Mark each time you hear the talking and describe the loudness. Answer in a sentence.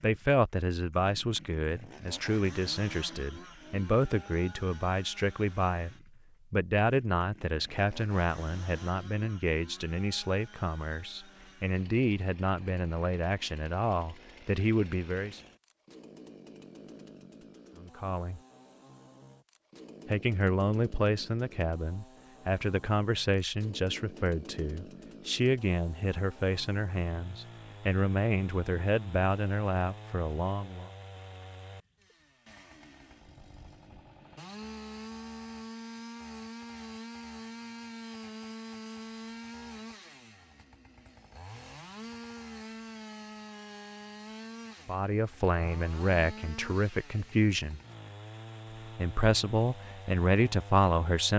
You can hear the talking from 0.0 to 15.4 s, at a steady volume; briefly from 17.8 to 18.4 s; from 20.1 to 30.9 s, at a steady volume; briefly from 44.9 to 47.8 s; and briefly from 49.0 to 51.3 s.